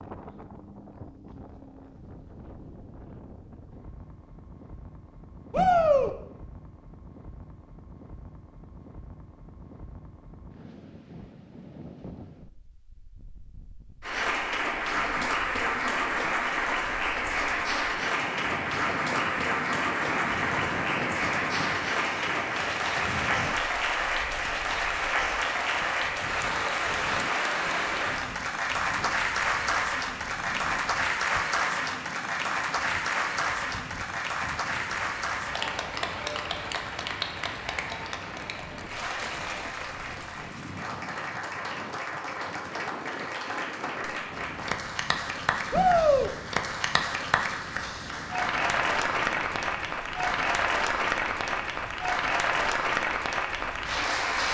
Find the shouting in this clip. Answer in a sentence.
You can hear the shouting from 5.5 to 6.1 s and from 45.7 to 46.3 s.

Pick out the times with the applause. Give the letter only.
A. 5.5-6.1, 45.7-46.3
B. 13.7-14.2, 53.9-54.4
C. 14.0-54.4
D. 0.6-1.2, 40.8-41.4
C.